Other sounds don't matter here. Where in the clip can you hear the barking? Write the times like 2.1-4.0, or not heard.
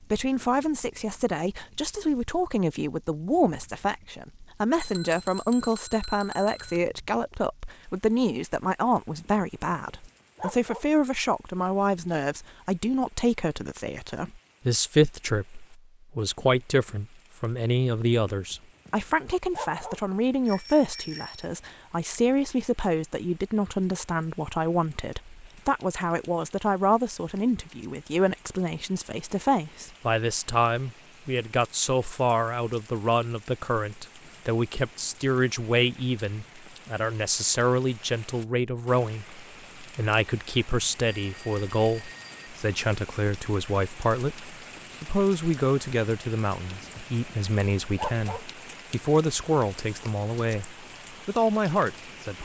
9.1-10.8, 18.3-20.0, 46.6-48.5.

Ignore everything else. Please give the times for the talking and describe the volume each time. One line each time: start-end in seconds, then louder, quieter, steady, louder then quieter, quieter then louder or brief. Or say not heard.
0.1-52.3 steady.